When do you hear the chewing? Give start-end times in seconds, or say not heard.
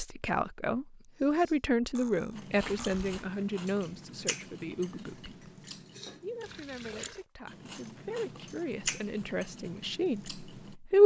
2.3-10.8.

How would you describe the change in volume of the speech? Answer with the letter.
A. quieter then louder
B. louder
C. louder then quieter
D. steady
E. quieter
A.